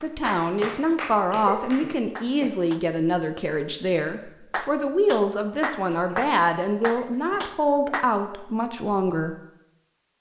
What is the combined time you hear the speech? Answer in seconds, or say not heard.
9 s.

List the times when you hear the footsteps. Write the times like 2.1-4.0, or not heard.
not heard.